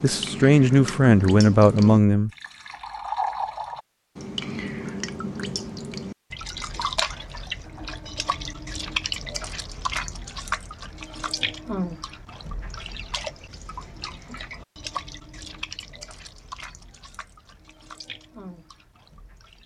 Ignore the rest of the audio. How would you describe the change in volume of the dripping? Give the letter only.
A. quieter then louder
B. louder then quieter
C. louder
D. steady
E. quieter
E.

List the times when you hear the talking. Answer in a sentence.
You can hear the talking from 0.0 to 2.3 s.